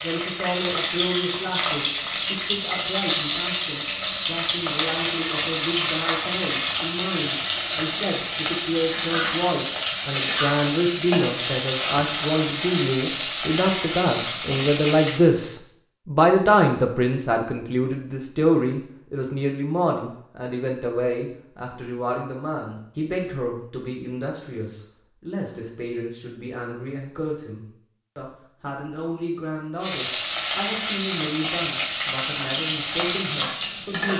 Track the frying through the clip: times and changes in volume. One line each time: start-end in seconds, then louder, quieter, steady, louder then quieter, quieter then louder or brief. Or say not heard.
0.0-15.2 steady
29.8-34.1 steady.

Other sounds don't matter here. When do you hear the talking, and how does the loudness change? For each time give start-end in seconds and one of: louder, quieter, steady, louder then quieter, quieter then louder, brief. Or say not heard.
0.0-34.1 louder then quieter.